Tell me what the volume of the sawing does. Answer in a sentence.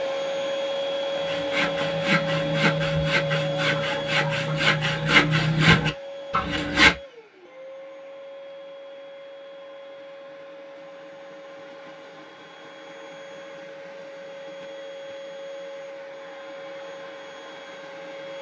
The volume of the sawing goes up.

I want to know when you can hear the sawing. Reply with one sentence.
You can hear the sawing from 1.1 to 7.0 s.